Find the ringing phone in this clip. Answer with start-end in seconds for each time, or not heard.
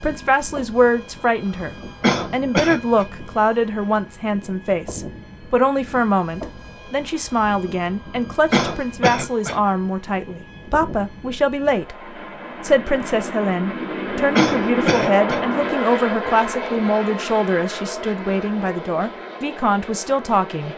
not heard.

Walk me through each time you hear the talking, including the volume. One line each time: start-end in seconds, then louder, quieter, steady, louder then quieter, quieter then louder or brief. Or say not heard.
0.0-20.7 steady.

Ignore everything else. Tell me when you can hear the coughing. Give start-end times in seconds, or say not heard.
2.0-3.0, 8.5-9.6, 14.3-15.4.